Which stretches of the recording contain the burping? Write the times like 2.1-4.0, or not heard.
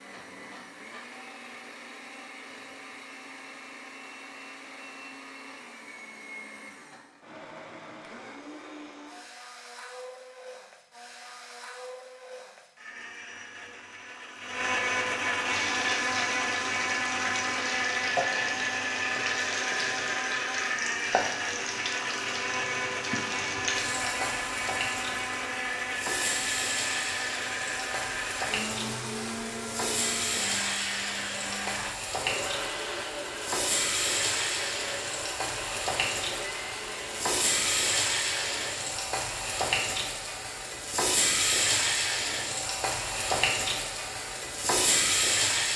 not heard.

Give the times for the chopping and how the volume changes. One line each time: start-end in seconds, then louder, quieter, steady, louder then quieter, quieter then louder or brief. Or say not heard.
not heard.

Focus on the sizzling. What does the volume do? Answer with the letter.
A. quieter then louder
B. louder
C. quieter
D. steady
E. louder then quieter
B.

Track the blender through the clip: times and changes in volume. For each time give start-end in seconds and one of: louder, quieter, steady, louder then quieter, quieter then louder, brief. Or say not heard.
0.0-38.9 louder then quieter.